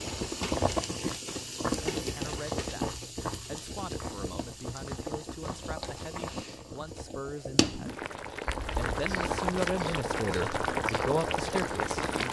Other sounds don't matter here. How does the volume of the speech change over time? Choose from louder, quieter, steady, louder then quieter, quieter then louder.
louder.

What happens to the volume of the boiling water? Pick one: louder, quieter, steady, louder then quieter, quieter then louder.
quieter then louder.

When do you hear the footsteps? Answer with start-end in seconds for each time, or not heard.
not heard.